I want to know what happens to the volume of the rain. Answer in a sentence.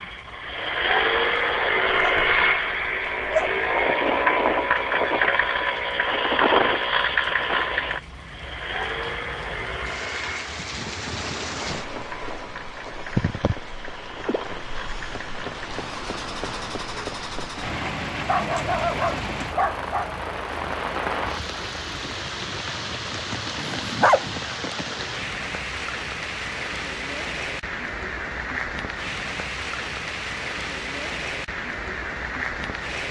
The volume of the rain goes up.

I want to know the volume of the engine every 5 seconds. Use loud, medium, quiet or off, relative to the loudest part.
loud, loud, quiet, quiet, quiet, off, off.